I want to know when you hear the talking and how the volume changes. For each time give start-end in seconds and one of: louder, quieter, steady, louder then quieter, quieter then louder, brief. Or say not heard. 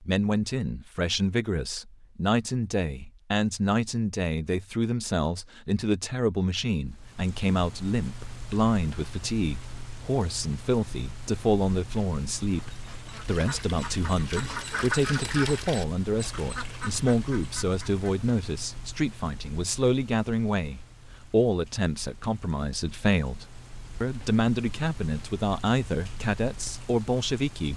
0.0-27.7 steady.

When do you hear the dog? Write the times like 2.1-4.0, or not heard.
not heard.